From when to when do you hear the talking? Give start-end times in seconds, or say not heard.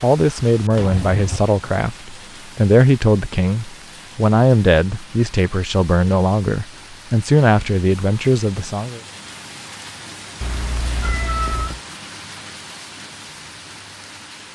0.0-9.0.